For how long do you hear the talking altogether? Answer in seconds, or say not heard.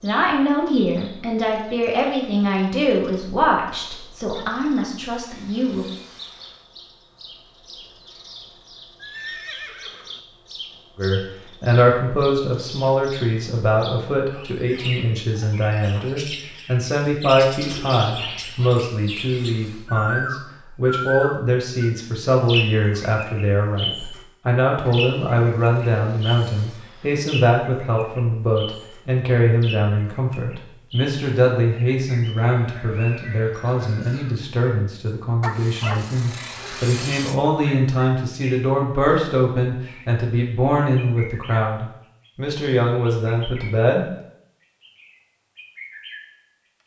39 s.